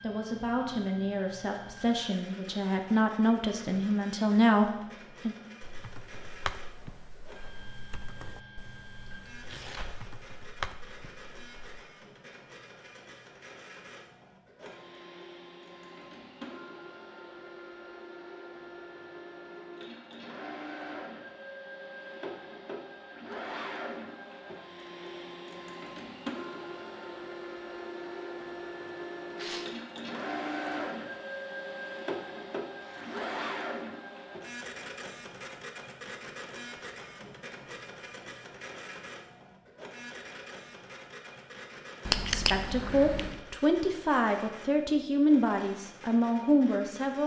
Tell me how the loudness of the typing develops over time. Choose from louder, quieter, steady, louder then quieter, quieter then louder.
quieter then louder.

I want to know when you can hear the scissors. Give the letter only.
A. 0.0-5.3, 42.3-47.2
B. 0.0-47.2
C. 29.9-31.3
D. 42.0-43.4
D.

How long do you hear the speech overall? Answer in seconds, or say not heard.
10 s.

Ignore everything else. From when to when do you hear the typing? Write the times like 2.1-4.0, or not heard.
5.7-11.8.